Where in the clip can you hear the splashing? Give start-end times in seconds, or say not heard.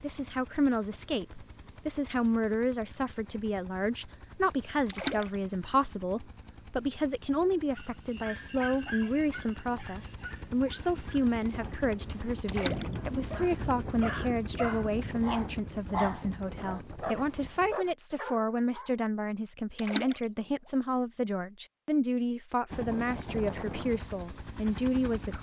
4.8-5.3, 12.4-12.9, 19.8-20.2.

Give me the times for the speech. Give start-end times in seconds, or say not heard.
0.0-25.3.